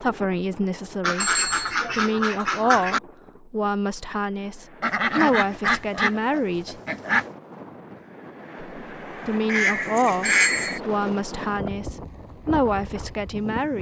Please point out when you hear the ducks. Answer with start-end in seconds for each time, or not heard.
1.0-3.0, 4.8-7.2, 9.4-10.8.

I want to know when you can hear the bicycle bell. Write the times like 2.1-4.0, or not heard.
1.2-1.8, 10.2-10.8.